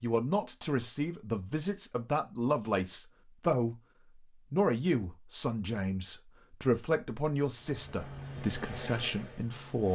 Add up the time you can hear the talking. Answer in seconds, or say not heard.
9 s.